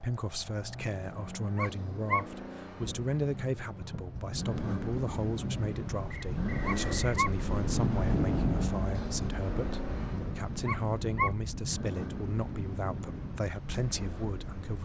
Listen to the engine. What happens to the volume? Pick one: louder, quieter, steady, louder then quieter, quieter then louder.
louder then quieter.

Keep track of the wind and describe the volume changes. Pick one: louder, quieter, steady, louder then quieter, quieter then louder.
louder then quieter.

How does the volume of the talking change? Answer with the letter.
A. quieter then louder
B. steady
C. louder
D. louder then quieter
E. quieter
B.